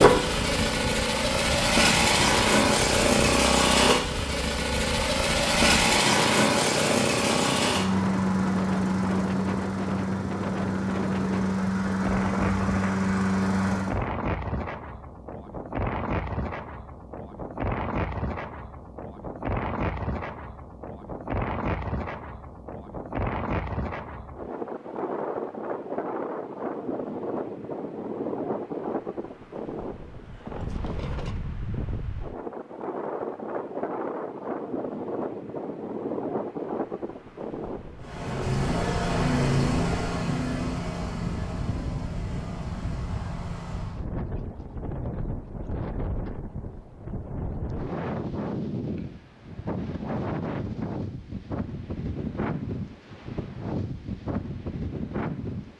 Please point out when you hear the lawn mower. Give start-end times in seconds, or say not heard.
0.0-14.0, 38.0-44.0.